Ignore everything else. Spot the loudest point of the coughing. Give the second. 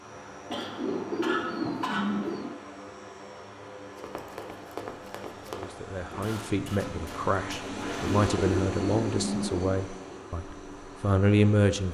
2 s.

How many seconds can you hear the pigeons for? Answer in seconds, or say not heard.
4 s.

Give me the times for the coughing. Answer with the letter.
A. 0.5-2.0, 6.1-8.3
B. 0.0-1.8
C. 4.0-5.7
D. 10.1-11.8
A.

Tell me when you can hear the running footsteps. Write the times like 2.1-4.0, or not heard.
4.0-5.7.